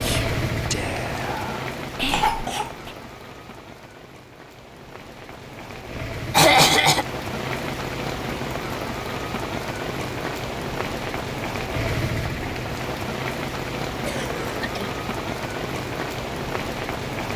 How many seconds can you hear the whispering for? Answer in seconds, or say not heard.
3 s.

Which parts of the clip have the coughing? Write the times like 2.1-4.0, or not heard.
2.1-2.7, 6.3-7.0, 14.1-14.9.